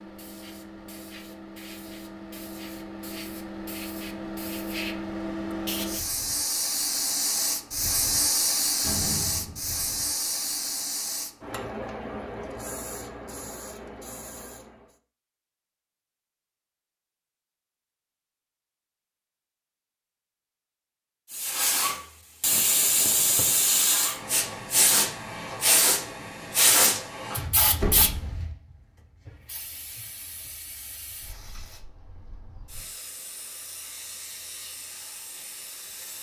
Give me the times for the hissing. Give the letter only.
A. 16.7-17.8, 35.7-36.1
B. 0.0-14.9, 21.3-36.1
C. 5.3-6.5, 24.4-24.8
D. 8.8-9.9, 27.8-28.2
B.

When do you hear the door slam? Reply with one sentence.
The door slam can be heard from 8.8 to 9.9 s and from 27.8 to 28.2 s.